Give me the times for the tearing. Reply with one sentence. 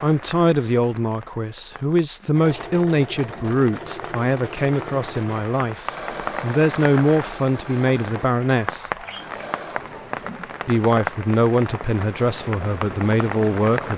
You can't hear the tearing here.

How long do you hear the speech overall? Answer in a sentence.
The speech can be heard for 12 seconds in total.